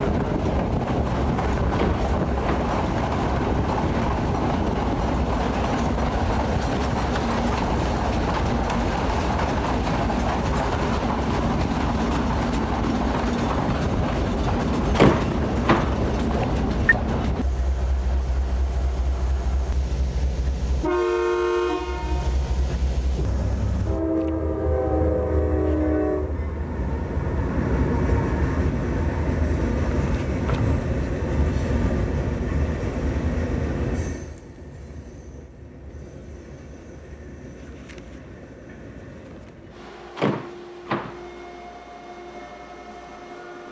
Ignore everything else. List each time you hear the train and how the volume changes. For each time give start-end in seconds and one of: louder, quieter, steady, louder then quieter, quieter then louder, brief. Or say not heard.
0.0-43.6 quieter.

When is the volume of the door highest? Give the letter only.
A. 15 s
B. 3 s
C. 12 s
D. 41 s
A.